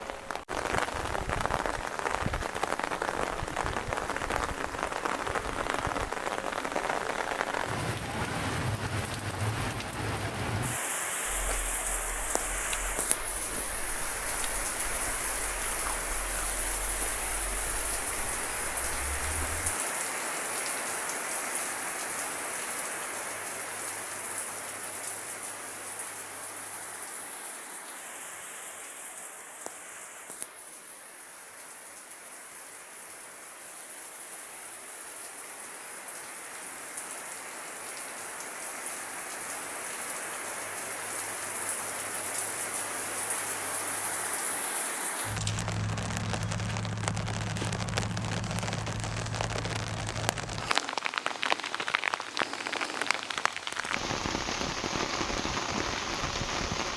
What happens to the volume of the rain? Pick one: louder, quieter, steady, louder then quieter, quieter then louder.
quieter then louder.